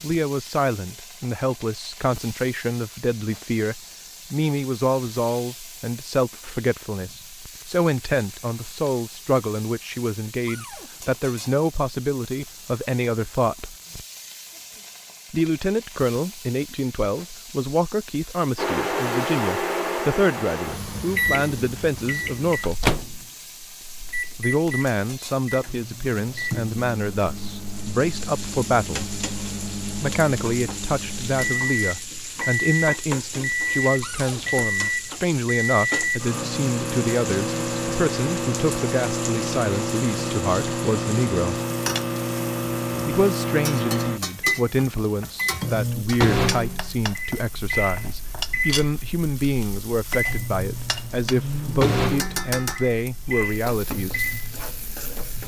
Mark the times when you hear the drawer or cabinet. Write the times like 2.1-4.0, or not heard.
10.4-10.9, 34.0-34.5.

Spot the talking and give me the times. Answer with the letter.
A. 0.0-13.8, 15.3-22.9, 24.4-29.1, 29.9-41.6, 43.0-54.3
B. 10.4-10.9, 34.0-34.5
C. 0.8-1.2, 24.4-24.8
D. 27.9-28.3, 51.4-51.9
A.